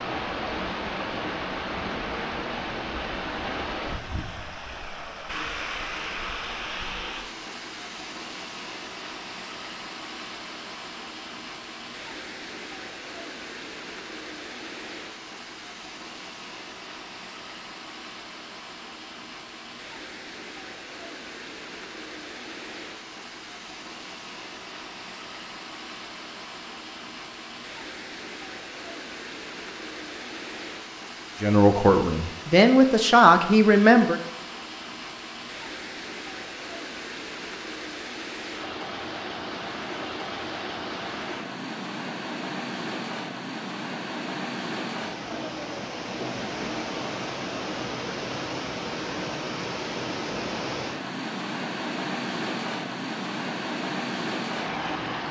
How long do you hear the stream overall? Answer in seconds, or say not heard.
55 s.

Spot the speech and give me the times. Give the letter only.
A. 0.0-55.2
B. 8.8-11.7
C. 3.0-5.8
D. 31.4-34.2
D.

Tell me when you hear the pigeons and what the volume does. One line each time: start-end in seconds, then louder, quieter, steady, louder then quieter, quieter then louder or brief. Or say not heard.
not heard.